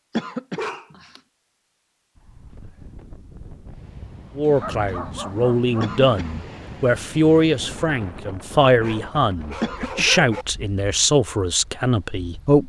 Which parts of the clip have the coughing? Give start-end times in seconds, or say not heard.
0.1-0.7, 5.8-6.3, 9.6-10.2.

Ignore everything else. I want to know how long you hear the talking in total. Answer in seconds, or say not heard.
8 s.